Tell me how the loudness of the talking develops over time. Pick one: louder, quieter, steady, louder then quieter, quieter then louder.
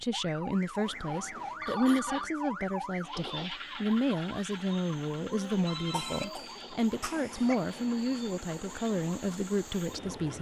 steady.